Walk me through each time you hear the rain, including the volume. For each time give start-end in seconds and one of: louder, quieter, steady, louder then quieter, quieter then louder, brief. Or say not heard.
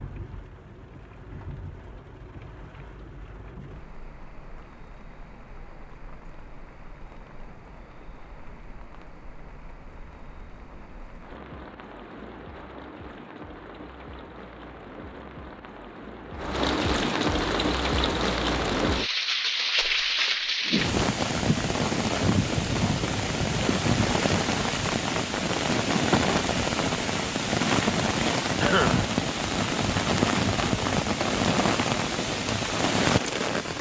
0.0-33.7 louder.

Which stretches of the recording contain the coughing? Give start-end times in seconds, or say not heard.
28.6-29.1.